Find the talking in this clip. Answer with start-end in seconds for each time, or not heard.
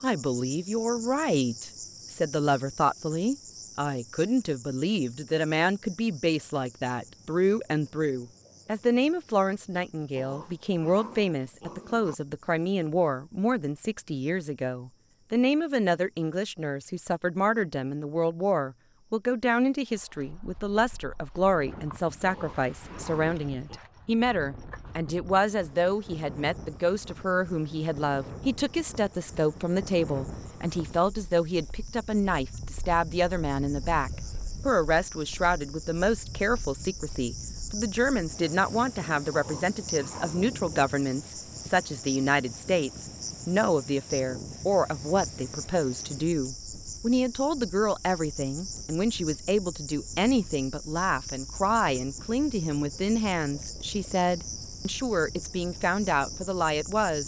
0.0-57.2.